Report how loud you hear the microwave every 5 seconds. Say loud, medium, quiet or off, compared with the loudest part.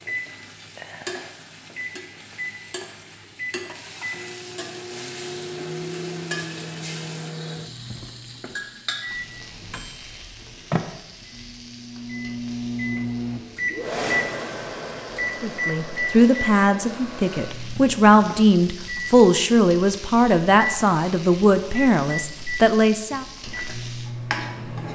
medium, medium, loud, loud, medium.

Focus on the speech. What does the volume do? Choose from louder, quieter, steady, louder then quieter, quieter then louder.
steady.